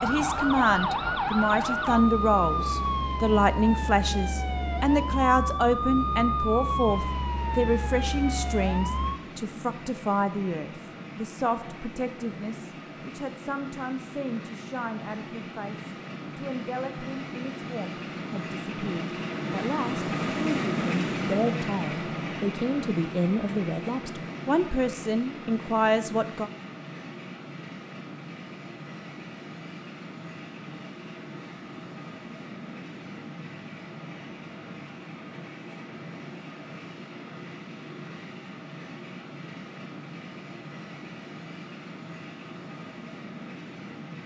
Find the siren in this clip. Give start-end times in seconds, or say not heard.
0.0-9.2.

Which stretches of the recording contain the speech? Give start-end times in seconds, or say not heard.
0.0-26.5.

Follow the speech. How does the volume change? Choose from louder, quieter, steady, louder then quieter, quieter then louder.
quieter then louder.